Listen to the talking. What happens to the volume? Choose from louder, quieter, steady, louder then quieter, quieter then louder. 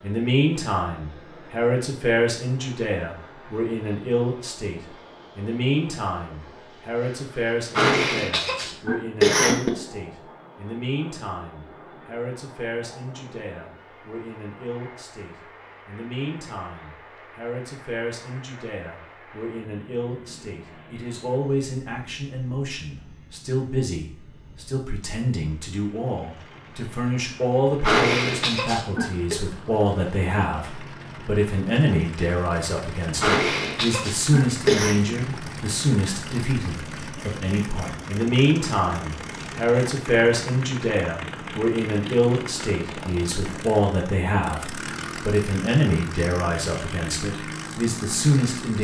quieter then louder.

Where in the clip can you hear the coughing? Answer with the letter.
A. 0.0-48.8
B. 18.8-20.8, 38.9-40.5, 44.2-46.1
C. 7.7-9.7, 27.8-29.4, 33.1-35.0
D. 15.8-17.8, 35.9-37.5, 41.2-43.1
C.